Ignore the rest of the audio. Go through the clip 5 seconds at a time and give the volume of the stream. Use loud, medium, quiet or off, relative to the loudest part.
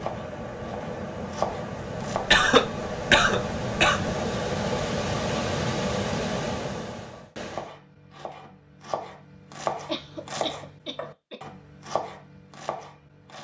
loud, loud, off.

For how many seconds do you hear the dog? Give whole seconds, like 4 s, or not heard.
not heard.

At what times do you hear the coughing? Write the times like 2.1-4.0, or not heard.
2.1-4.2, 9.8-11.3.